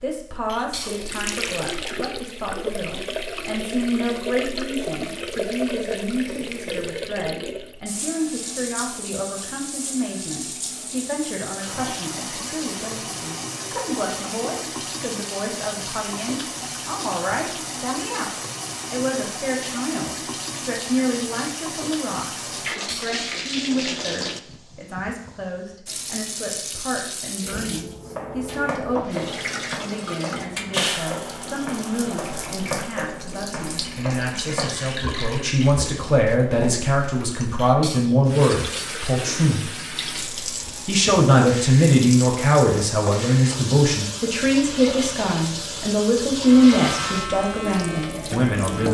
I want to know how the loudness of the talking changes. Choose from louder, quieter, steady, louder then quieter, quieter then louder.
louder.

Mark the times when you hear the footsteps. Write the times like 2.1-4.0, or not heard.
28.1-37.0.